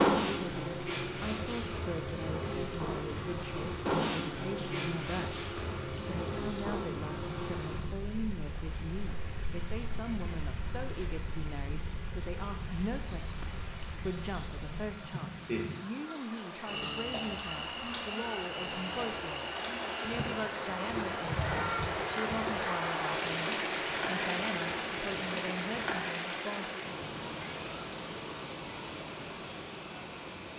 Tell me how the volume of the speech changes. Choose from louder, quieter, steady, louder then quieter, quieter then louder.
steady.